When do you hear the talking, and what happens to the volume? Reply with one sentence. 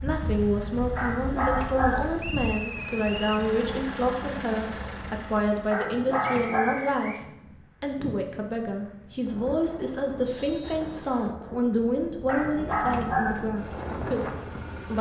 You can hear the talking from 0.0 to 14.9 s, at a steady volume.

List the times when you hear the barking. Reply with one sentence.
The barking can be heard from 0.9 to 2.1 s, from 5.7 to 6.9 s and from 12.2 to 13.5 s.